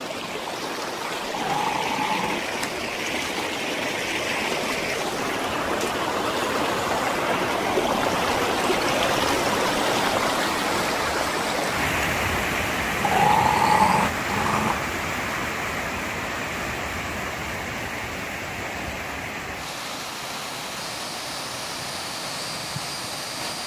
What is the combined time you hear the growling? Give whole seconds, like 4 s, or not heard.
3 s.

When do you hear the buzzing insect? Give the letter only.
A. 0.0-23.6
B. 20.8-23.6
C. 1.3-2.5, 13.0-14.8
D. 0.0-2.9
B.